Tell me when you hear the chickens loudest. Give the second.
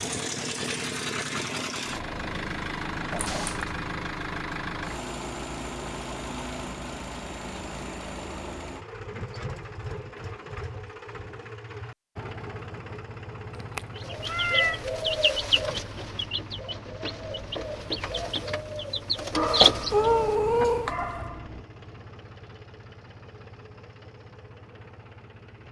20 s.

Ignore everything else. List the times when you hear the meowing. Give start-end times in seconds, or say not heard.
3.1-3.7, 13.6-14.8, 19.9-20.9.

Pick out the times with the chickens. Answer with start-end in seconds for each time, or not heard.
13.9-21.3.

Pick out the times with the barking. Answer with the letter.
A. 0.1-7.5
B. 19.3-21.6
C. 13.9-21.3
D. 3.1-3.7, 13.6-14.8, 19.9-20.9
B.